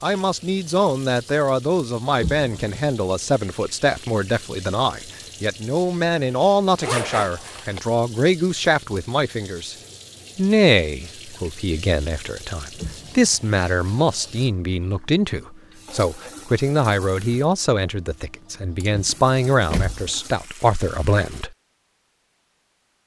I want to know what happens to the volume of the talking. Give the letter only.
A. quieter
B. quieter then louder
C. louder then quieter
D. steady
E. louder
D.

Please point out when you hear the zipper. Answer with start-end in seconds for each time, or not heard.
6.8-7.8.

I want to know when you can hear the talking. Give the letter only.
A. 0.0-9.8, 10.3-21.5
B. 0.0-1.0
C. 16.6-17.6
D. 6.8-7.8
A.